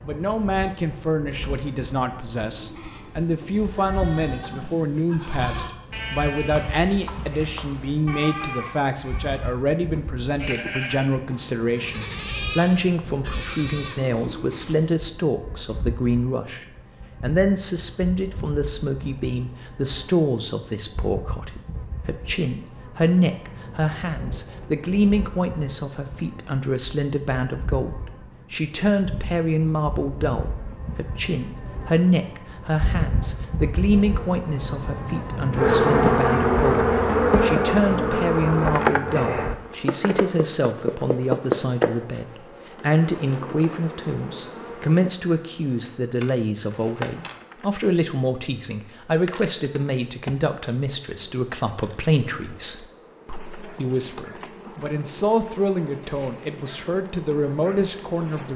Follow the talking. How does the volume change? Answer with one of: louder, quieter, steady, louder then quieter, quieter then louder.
steady.